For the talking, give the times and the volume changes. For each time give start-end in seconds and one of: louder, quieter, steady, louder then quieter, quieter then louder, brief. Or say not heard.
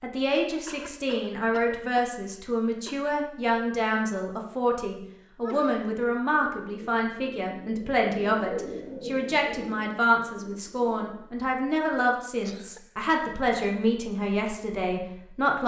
0.0-15.6 steady.